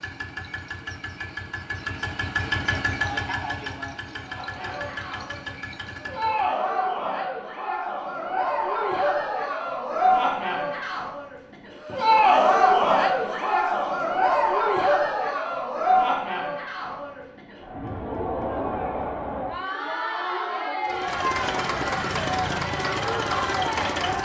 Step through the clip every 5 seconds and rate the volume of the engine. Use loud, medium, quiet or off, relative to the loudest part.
loud, medium, off, off, loud.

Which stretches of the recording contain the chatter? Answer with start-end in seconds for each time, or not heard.
4.2-24.1.